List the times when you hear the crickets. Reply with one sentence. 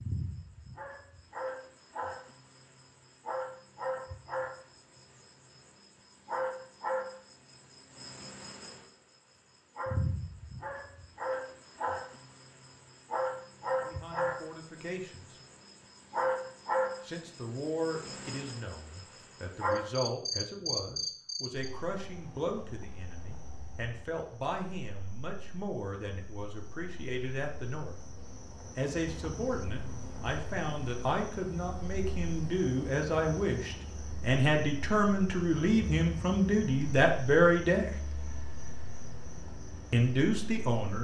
The crickets can be heard from 0.0 to 40.9 s.